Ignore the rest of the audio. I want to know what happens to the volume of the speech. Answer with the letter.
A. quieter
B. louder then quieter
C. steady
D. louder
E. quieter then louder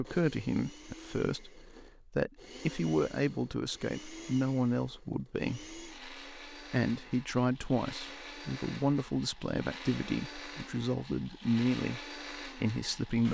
C.